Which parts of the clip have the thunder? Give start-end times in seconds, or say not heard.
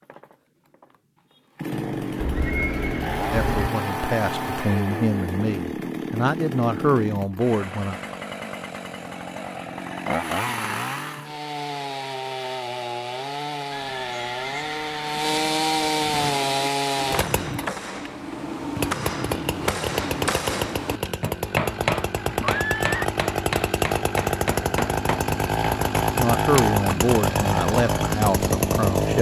not heard.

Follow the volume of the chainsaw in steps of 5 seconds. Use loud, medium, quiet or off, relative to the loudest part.
medium, medium, medium, loud, loud, loud.